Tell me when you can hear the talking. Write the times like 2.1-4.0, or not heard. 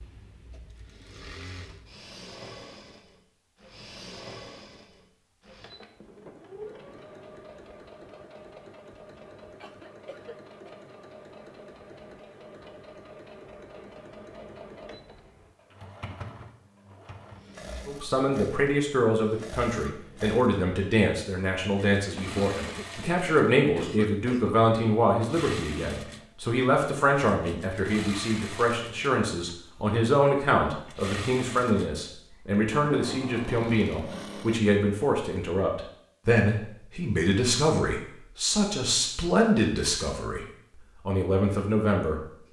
17.9-40.5, 41.0-42.2.